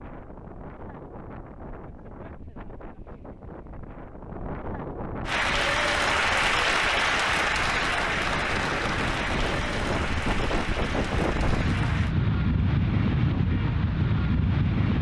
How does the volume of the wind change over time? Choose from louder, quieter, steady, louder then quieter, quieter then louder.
louder.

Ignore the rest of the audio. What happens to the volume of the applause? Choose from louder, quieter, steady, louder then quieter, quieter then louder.
quieter.